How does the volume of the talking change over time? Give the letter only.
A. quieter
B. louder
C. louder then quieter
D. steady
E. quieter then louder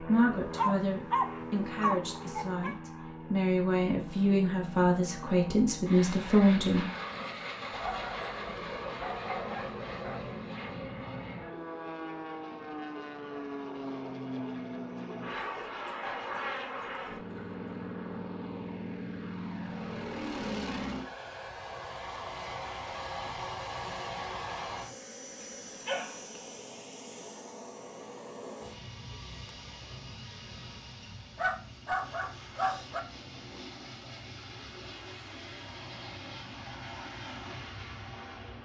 B.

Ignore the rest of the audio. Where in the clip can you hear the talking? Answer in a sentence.
You can hear the talking from 0.0 to 6.8 s.